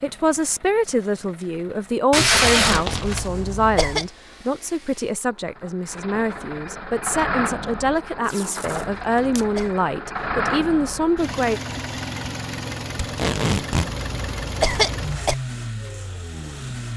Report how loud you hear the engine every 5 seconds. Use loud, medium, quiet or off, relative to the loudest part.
quiet, loud, loud, loud.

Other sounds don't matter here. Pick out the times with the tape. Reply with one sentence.
You can hear the tape from 2.1 to 3.3 s, from 8.2 to 9.4 s and from 13.0 to 13.9 s.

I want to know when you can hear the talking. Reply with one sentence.
You can hear the talking from 0.0 to 11.6 s.